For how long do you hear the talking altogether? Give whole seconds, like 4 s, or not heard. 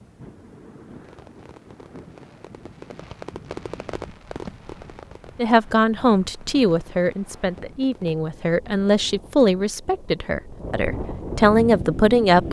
7 s.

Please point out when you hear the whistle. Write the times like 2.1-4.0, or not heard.
not heard.